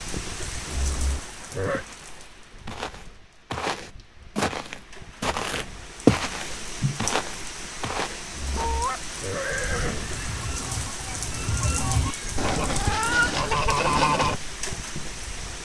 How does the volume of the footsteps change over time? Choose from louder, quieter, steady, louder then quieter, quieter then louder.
louder then quieter.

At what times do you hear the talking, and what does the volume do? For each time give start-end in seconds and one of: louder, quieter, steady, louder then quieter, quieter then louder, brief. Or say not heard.
not heard.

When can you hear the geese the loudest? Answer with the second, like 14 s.
14 s.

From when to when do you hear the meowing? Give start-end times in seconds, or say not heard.
11.7-13.3.